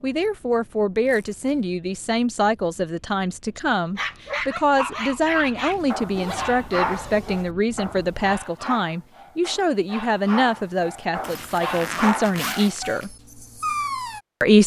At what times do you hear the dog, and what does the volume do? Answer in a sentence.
You can hear the dog from 3.5 to 14.2 s, getting quieter then louder.